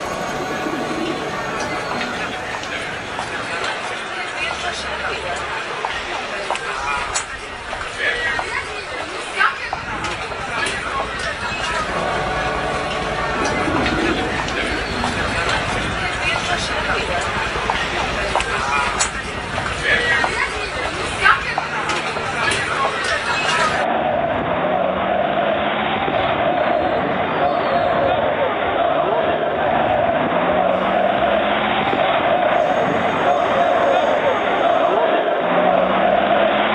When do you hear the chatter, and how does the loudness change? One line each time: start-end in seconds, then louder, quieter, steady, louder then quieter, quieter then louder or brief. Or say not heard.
0.0-36.7 louder.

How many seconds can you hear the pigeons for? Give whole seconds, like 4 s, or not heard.
6 s.